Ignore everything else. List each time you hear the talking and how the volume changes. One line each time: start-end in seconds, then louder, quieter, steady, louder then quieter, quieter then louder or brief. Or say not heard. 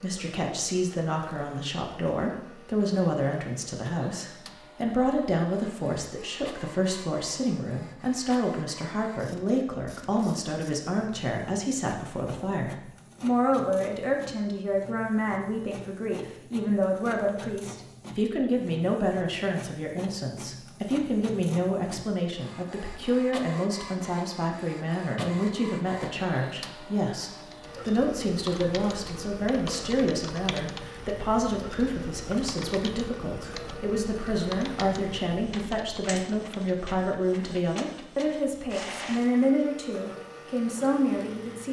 0.0-41.6 steady.